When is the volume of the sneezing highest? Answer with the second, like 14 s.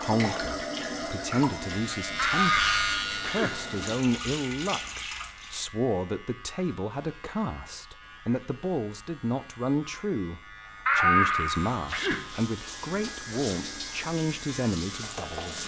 11 s.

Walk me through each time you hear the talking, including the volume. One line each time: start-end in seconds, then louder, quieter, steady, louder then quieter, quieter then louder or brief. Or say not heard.
0.0-15.6 steady.